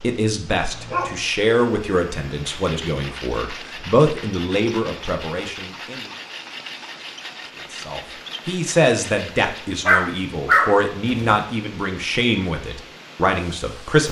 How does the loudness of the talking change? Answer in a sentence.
The loudness of the talking stays about the same.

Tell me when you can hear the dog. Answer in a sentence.
The dog can be heard from 0.7 to 1.2 s and from 9.8 to 11.4 s.